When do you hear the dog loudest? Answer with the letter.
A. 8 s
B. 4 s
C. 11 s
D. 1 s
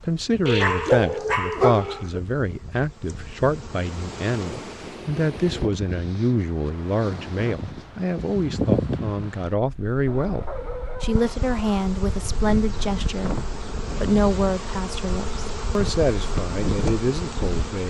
D.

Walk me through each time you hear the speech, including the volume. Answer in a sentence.
The speech can be heard from 0.0 to 17.8 s, at a steady volume.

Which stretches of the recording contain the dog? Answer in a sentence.
The dog can be heard from 0.5 to 2.2 s and from 10.1 to 11.8 s.